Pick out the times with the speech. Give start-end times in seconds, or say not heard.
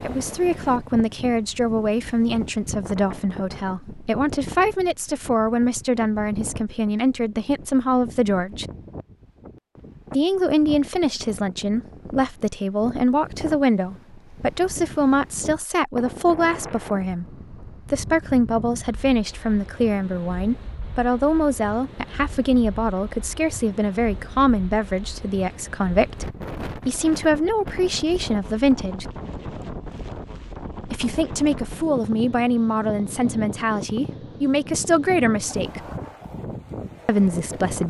0.0-8.7, 10.1-29.1, 30.9-35.8, 37.0-37.8.